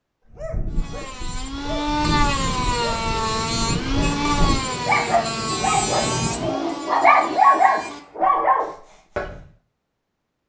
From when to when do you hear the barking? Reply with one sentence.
The barking can be heard from 0.3 to 9.3 s.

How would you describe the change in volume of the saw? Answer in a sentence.
The volume of the saw goes down.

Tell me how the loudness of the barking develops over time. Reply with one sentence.
The volume of the barking goes up.